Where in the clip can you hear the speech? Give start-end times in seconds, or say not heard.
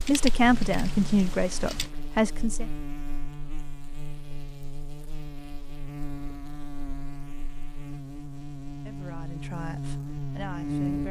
0.1-2.7, 8.8-11.0.